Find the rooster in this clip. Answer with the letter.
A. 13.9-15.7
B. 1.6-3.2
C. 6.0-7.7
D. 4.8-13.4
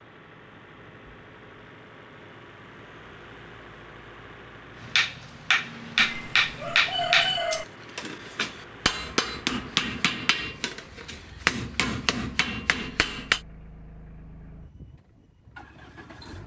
C.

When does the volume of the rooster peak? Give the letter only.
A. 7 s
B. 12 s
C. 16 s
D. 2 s
A.